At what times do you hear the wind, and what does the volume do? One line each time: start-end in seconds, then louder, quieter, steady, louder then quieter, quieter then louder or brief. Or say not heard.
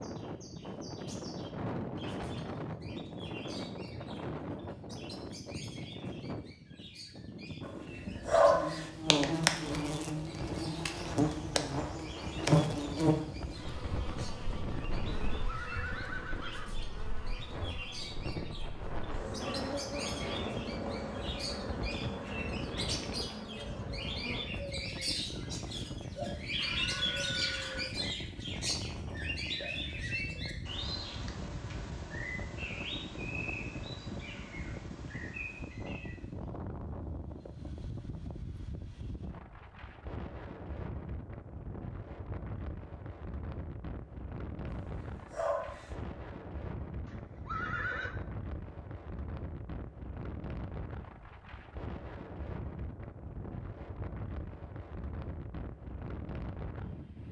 0.0-57.2 steady.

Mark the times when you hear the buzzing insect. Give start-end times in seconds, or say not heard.
8.4-24.4.